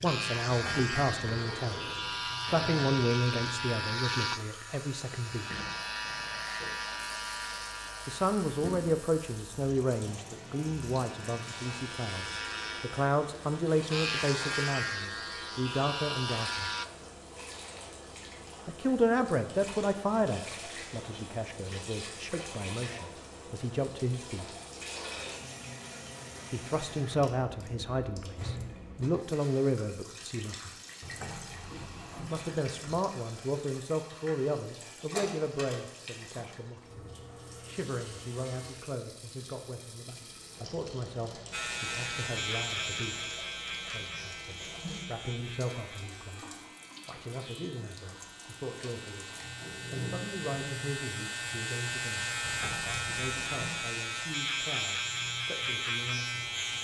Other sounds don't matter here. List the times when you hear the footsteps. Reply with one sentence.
The footsteps can't be heard in this clip.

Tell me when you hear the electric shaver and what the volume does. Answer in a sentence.
You can hear the electric shaver from 0.0 to 16.9 s, getting quieter then louder; and from 41.5 to 56.7 s, getting quieter then louder.